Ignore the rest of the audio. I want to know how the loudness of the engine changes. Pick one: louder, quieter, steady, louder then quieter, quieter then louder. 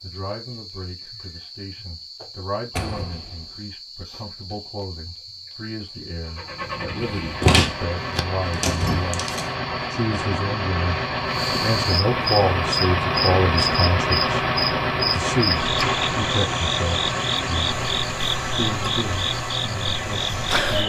louder then quieter.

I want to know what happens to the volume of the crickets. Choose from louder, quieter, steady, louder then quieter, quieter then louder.
louder.